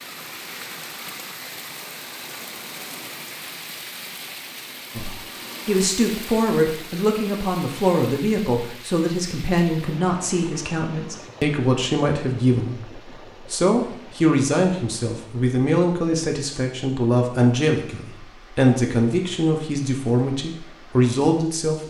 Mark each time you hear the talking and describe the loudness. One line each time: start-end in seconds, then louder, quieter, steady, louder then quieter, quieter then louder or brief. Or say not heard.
5.0-21.8 steady.